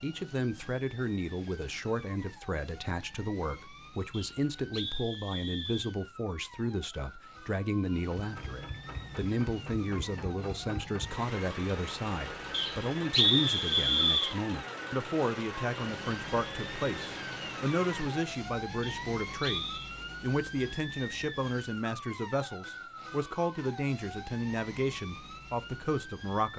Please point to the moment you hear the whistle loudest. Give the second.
13 s.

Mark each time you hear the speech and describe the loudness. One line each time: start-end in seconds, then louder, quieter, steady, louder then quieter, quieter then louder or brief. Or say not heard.
0.0-26.5 steady.